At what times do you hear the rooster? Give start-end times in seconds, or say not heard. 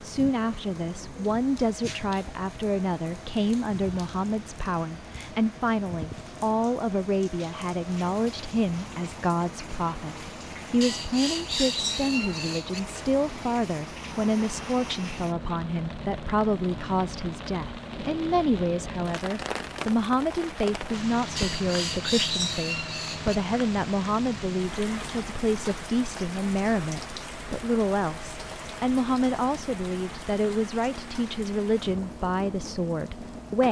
10.8-12.8, 21.4-23.4.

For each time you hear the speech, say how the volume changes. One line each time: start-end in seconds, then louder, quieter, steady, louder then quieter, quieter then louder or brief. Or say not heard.
0.0-33.6 steady.